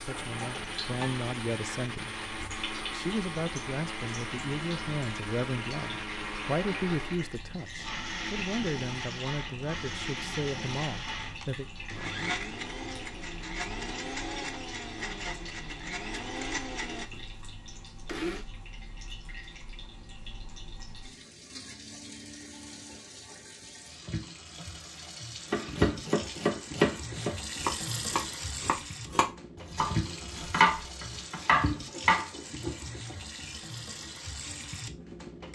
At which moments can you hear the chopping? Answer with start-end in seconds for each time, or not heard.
25.5-32.2.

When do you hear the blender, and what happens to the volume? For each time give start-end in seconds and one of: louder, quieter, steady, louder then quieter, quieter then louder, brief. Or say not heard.
0.0-18.4 steady.